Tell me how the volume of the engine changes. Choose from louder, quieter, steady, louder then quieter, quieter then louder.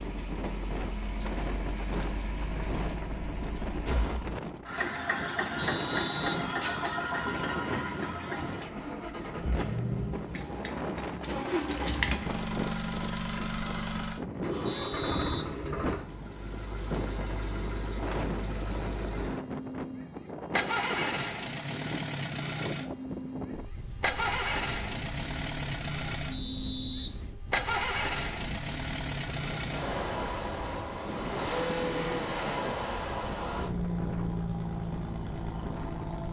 steady.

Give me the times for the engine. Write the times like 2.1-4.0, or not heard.
0.0-36.2.